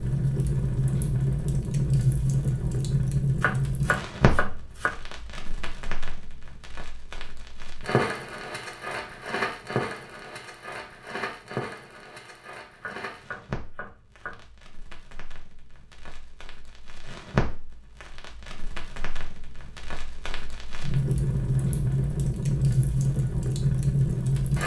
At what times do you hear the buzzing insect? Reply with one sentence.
You can't hear the buzzing insect here.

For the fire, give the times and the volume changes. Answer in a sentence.
The fire can be heard from 0.0 to 24.6 s, getting quieter then louder.